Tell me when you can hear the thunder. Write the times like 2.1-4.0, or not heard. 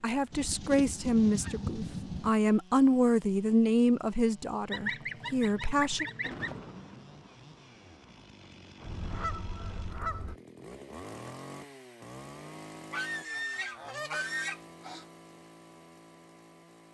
5.8-9.2.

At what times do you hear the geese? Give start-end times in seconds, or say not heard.
0.3-2.3, 4.7-6.6, 8.8-10.3, 12.9-15.1.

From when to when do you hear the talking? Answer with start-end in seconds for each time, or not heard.
0.0-6.0.